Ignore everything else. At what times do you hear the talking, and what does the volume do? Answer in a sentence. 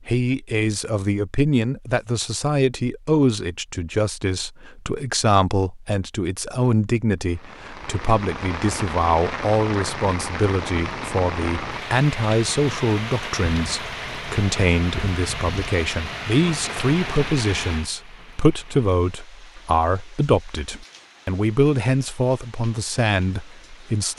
You can hear the talking from 0.1 to 24.1 s, at a steady volume.